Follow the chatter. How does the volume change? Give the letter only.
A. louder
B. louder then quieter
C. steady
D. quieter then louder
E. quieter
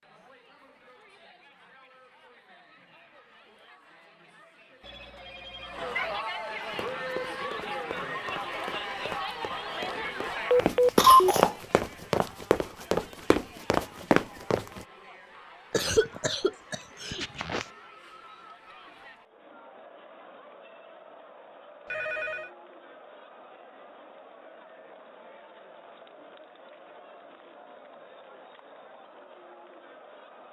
B.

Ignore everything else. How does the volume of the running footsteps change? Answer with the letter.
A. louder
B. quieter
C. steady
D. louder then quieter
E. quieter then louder
A.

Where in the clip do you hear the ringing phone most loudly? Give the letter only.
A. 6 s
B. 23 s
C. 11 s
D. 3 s
C.